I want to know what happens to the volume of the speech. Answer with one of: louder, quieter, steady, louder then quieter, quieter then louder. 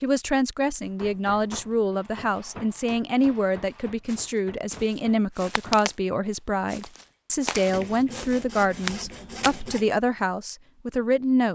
steady.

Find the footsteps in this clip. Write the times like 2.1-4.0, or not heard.
4.0-6.0, 6.7-9.6.